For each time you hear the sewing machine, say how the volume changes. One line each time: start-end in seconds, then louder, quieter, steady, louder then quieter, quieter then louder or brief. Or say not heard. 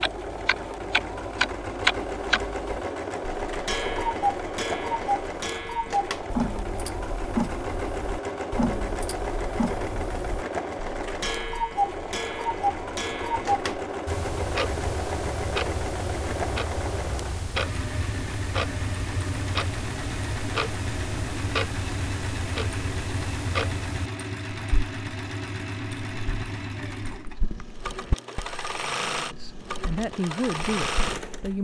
0.0-31.5 steady.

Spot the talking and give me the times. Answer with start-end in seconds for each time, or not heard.
29.1-31.5.